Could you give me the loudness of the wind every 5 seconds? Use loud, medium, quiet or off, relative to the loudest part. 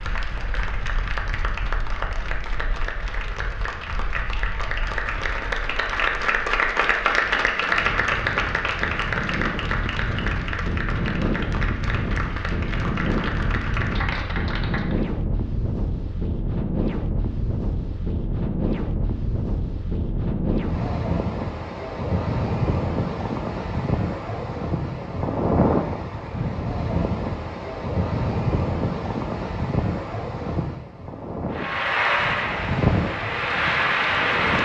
quiet, medium, loud, loud, loud, loud, loud.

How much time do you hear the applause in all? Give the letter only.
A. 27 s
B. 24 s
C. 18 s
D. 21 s
C.